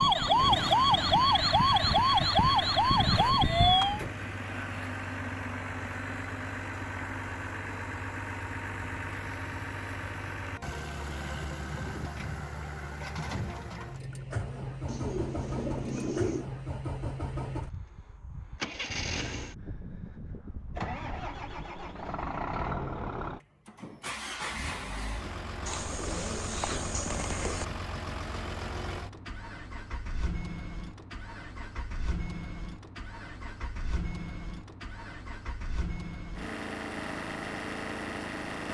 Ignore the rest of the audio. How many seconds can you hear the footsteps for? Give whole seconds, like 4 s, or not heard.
not heard.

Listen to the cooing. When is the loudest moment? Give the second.
16 s.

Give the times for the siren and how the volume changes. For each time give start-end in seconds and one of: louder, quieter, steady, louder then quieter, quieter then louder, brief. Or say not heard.
0.0-4.0 steady.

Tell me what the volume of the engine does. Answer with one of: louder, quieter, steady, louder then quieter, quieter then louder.
steady.